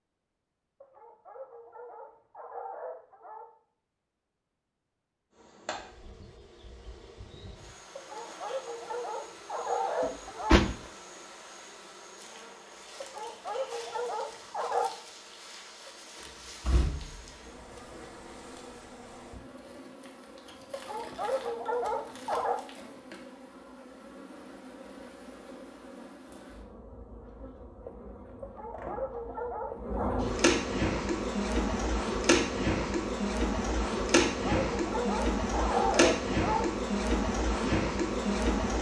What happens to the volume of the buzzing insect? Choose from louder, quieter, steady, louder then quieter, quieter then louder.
louder.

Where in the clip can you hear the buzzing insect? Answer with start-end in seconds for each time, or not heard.
5.3-38.7.